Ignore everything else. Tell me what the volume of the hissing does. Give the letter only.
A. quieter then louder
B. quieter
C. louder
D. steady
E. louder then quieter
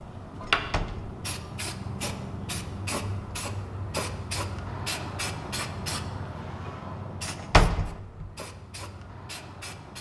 B.